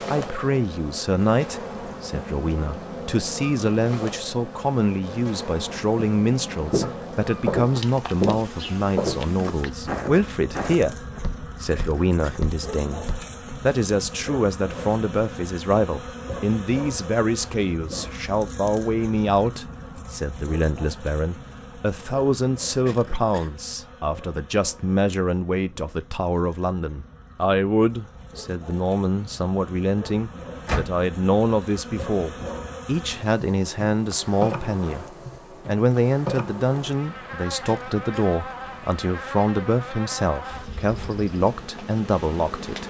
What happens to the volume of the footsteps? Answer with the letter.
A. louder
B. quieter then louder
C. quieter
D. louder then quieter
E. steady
C.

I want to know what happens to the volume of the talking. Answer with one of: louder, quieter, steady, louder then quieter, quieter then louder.
steady.